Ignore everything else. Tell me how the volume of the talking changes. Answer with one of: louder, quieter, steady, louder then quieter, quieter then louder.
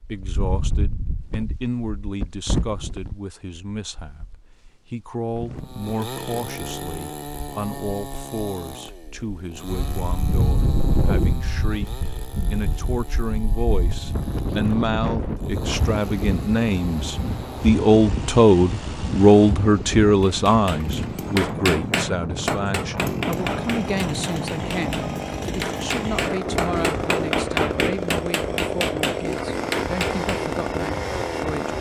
louder then quieter.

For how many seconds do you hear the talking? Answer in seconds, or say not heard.
32 s.